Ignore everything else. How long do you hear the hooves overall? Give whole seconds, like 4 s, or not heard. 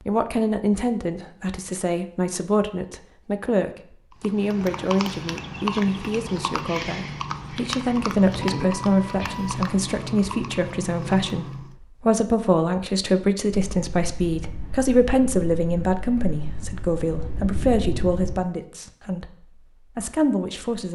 8 s.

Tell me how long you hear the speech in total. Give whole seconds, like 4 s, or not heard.
21 s.